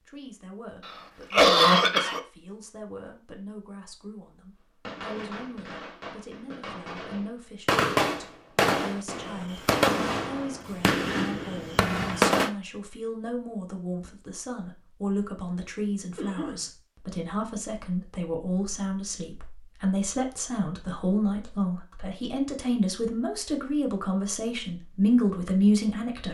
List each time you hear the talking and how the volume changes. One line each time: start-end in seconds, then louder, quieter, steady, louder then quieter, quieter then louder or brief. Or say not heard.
0.0-26.2 louder.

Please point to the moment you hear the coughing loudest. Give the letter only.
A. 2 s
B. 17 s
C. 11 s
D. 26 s
A.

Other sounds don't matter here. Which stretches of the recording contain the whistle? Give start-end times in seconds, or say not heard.
not heard.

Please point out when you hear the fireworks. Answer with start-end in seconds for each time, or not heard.
4.8-12.5.